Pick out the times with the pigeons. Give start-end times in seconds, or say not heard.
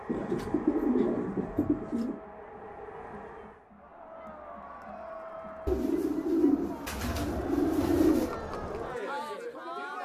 0.1-2.2, 5.7-8.3.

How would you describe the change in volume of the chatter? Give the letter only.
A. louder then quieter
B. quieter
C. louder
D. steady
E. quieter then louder
C.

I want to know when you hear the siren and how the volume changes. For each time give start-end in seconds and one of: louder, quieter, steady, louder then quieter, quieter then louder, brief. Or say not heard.
not heard.